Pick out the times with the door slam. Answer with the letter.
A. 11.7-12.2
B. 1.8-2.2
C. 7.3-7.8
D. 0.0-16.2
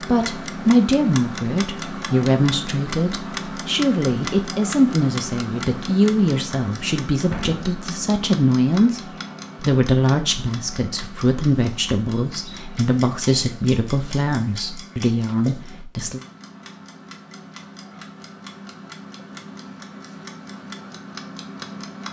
C.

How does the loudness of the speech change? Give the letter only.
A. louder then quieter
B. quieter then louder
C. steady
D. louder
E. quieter
C.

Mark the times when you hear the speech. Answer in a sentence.
The speech can be heard from 0.0 to 16.2 s.